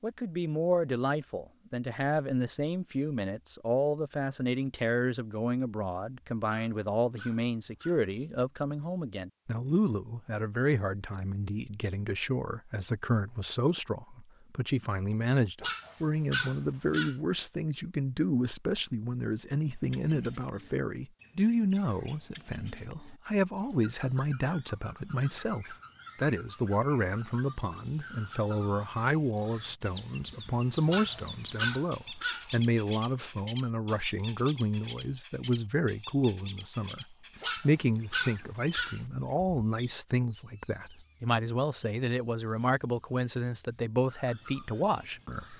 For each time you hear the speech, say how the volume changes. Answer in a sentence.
The speech can be heard from 0.0 to 45.5 s, at a steady volume.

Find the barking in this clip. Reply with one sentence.
The barking can be heard from 6.5 to 8.1 s, from 15.6 to 17.1 s, from 30.9 to 32.5 s and from 37.4 to 39.0 s.